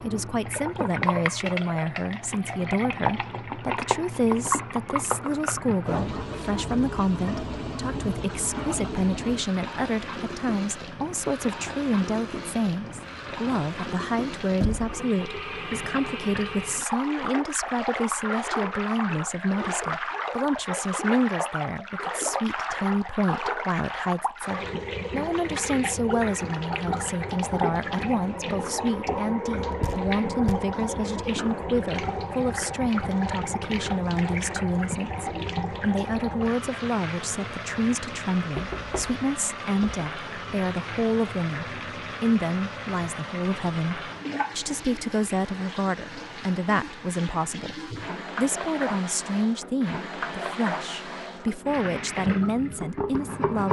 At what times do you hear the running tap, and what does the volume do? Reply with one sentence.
The running tap can be heard from 0.0 to 53.6 s, at a steady volume.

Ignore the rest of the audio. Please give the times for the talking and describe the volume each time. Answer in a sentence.
The talking can be heard from 0.0 to 53.6 s, at a steady volume.